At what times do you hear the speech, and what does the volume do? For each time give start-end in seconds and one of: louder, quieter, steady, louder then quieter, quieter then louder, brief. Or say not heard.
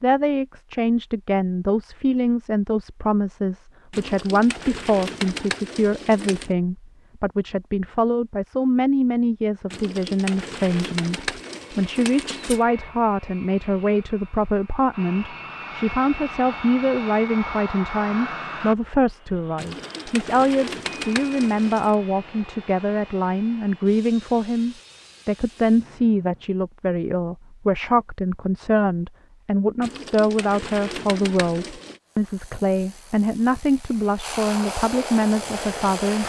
0.0-36.2 steady.